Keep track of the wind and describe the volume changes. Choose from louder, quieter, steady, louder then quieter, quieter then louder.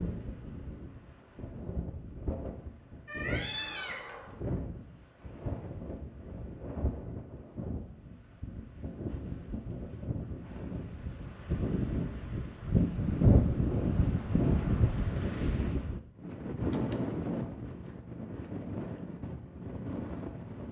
louder then quieter.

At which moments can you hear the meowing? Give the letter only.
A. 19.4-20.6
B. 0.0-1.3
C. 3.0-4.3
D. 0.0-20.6
C.